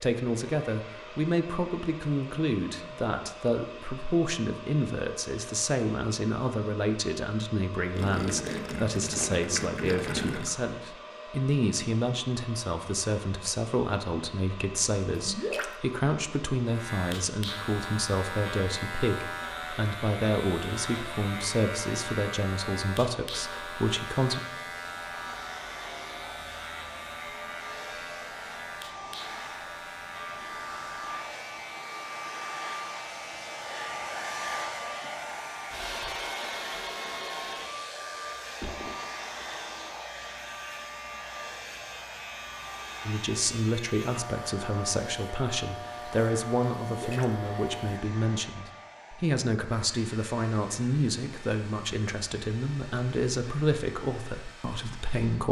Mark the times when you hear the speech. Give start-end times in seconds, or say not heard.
0.0-24.4, 43.0-55.4.